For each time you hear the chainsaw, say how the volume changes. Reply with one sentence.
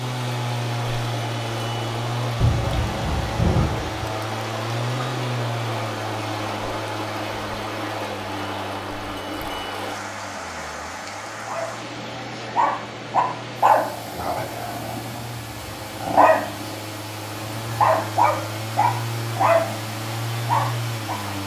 You can hear the chainsaw from 0.0 to 21.4 s, getting quieter then louder.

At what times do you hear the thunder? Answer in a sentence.
You can hear the thunder from 2.4 to 4.1 s.